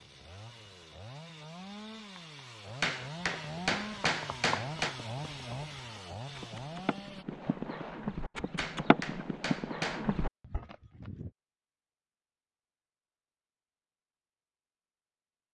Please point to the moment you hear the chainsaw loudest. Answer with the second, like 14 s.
5 s.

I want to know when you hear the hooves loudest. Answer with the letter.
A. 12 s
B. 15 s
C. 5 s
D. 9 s
D.